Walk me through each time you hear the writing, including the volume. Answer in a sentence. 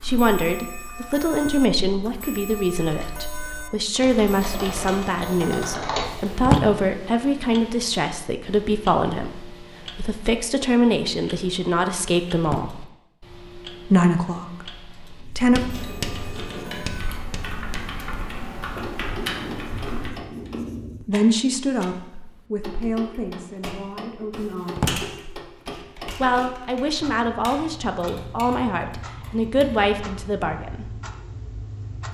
You can hear the writing from 15.2 to 21.1 s, getting quieter then louder.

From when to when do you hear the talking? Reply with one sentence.
The talking can be heard from 0.0 to 12.9 s, from 13.9 to 15.6 s, from 21.0 to 24.9 s and from 26.2 to 30.9 s.